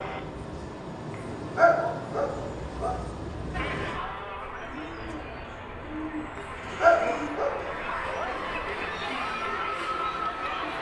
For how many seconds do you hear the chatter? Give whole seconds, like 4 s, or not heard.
7 s.